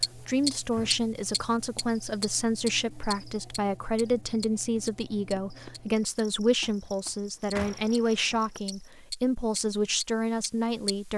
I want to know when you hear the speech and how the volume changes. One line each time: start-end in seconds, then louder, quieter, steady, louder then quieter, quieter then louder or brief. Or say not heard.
0.0-11.1 steady.